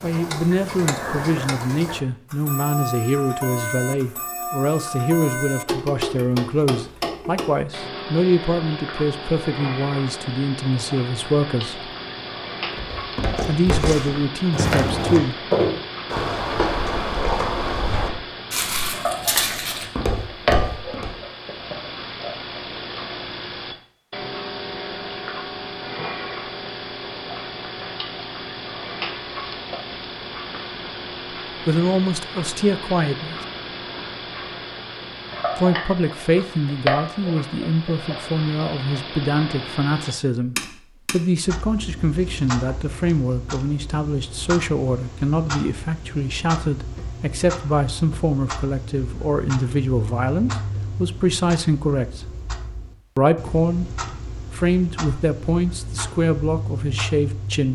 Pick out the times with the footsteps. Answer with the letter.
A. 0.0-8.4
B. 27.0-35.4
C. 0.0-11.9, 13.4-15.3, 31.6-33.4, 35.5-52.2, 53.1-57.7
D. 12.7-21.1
D.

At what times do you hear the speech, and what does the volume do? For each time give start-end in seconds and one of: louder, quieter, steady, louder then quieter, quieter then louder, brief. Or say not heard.
0.0-11.9 steady
13.4-15.3 brief
31.6-33.4 brief
35.5-52.2 steady
53.1-57.7 steady.